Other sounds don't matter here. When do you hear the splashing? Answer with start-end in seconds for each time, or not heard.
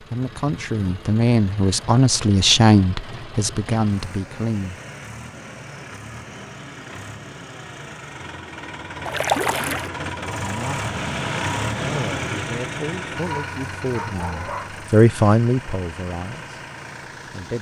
9.1-9.9.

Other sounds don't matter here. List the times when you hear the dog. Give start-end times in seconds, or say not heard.
13.2-14.8.